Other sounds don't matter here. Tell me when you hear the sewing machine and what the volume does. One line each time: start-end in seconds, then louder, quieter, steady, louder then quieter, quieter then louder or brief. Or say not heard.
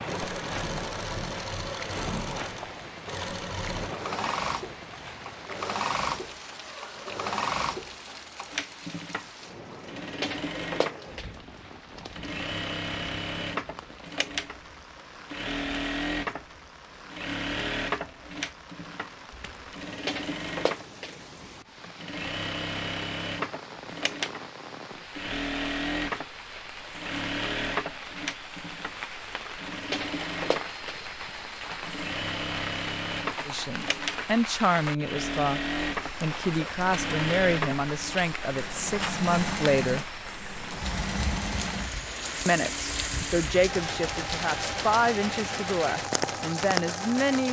0.1-47.4 steady.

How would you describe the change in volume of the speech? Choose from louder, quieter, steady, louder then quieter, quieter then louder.
steady.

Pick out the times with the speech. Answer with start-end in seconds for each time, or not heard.
33.5-40.0, 42.5-47.4.